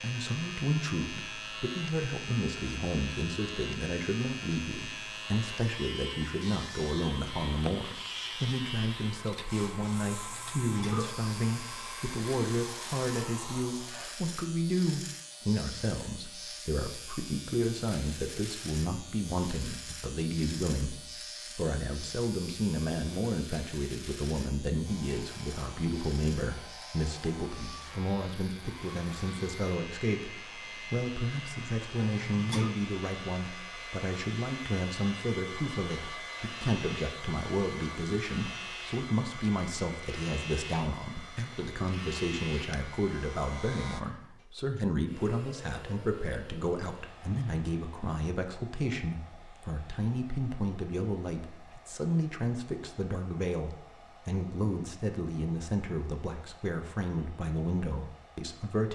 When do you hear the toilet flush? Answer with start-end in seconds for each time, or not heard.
10.3-11.2, 32.0-32.7.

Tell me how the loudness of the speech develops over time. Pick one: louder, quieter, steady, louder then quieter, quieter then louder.
steady.